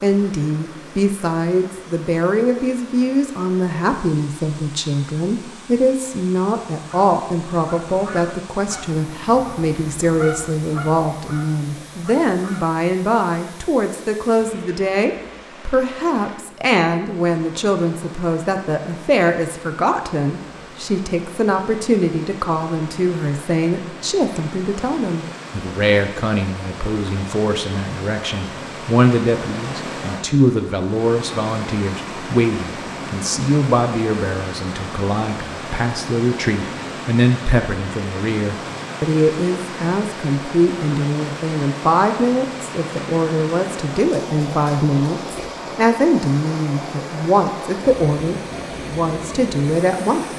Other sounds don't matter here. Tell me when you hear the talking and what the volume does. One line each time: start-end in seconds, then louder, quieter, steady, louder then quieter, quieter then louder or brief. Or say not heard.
0.0-50.2 steady.